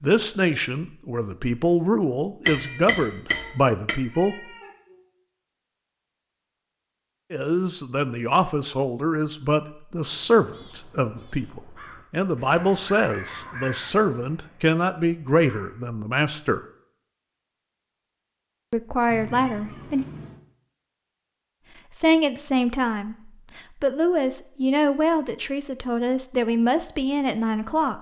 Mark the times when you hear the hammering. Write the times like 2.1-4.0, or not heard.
2.5-4.0.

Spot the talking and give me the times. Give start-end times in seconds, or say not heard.
0.0-4.3, 7.3-16.6, 18.7-20.1, 21.9-27.9.